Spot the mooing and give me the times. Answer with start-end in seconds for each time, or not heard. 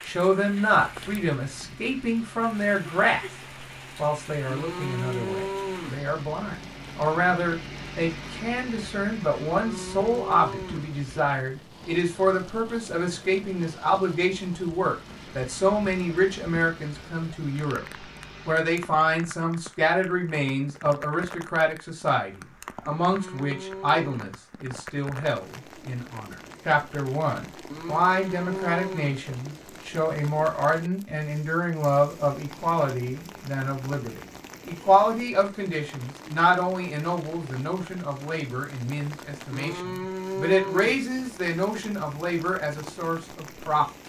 4.5-6.0, 9.4-10.9, 22.9-24.4, 27.7-29.2, 39.5-41.0.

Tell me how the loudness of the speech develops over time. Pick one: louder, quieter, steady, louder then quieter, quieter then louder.
steady.